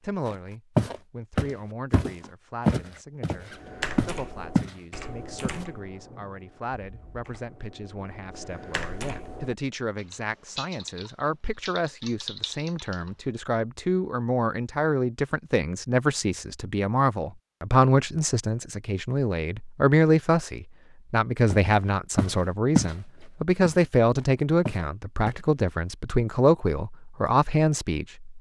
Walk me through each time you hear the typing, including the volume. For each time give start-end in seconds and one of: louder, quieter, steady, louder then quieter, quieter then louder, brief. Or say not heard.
3.5-13.2 quieter then louder.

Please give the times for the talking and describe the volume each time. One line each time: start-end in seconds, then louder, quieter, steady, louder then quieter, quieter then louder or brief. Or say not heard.
0.0-28.2 louder.